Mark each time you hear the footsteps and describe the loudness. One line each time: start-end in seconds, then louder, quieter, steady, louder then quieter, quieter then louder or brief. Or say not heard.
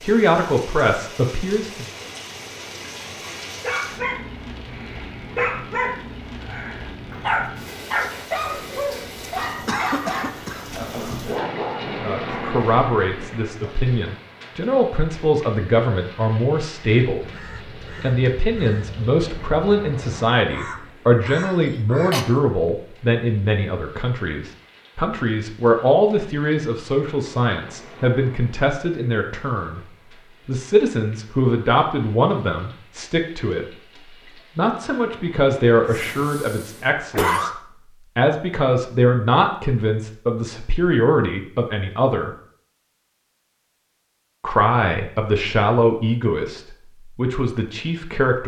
not heard.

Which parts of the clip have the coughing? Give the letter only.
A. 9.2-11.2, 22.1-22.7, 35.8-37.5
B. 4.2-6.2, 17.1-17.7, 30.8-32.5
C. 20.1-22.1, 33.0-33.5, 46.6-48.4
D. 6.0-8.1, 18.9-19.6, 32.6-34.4
A.